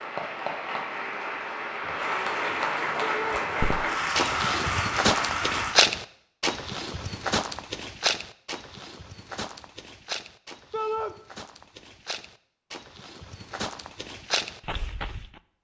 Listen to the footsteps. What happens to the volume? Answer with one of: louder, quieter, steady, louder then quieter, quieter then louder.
quieter then louder.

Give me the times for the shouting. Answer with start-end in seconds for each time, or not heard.
3.0-3.5, 10.7-11.2.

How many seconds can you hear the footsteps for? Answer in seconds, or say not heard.
12 s.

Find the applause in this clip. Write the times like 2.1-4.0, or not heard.
0.0-5.8.